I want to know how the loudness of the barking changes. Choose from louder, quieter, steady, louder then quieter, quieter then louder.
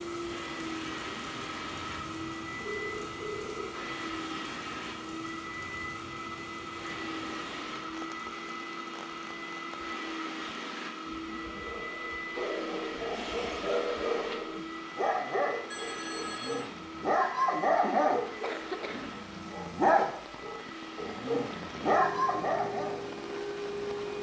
louder.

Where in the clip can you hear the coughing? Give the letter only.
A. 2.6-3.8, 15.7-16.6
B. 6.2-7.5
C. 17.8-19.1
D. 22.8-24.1
C.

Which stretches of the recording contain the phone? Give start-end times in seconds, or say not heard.
2.6-3.8, 15.7-16.6.